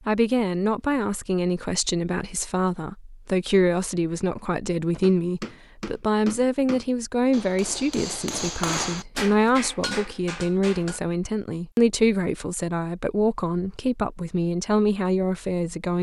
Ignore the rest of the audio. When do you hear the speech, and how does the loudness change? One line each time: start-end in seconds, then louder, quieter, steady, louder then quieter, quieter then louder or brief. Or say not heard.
0.1-15.9 steady.